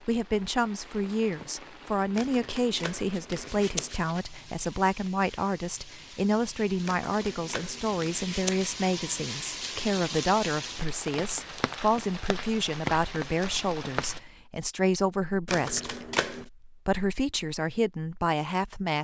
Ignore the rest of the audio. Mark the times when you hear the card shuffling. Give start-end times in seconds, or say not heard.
2.1-4.0, 6.8-8.7, 15.4-16.5.